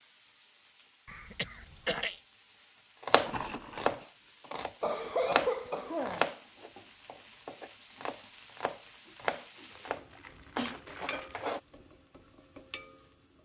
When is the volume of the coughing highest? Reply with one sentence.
The loudest moment of the coughing is at 5 seconds.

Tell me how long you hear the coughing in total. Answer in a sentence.
You can hear the coughing for 3 seconds altogether.